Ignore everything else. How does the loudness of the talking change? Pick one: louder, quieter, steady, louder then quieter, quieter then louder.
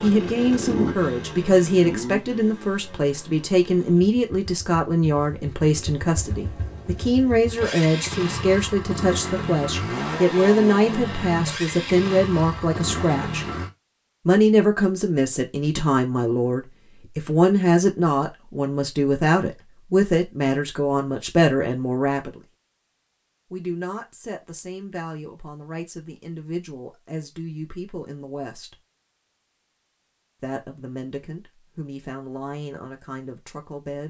quieter.